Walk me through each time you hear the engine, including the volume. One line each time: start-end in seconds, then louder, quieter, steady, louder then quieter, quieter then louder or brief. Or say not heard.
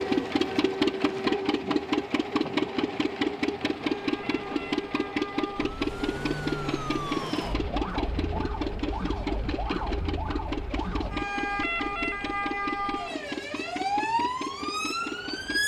0.0-15.6 quieter.